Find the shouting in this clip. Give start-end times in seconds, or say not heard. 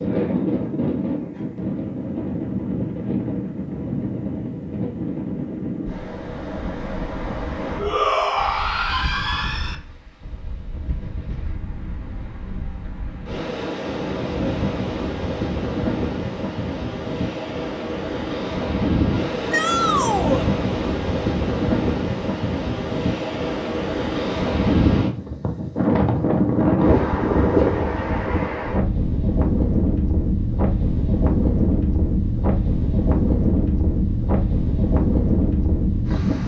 7.8-9.8, 19.5-20.4.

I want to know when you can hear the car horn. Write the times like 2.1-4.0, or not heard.
not heard.